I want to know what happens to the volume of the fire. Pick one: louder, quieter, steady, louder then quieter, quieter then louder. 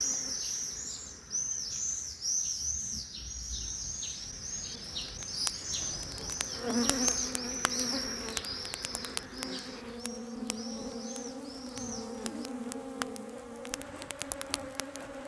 quieter then louder.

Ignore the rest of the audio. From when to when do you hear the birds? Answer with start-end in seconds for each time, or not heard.
0.0-12.5.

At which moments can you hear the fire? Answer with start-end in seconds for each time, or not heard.
5.0-15.1.